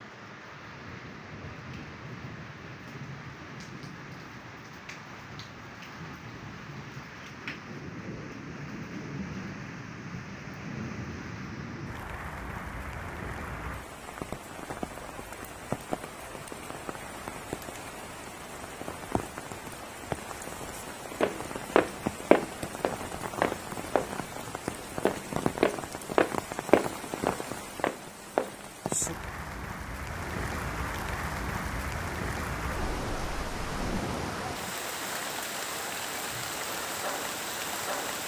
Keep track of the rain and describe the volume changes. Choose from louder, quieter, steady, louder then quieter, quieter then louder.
louder.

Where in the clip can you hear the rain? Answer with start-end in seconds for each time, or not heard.
0.0-38.2.